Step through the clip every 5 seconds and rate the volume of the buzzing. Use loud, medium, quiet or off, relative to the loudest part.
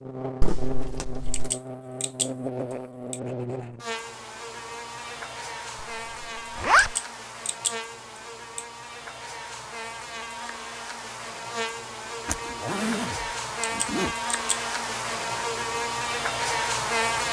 medium, medium, medium, loud.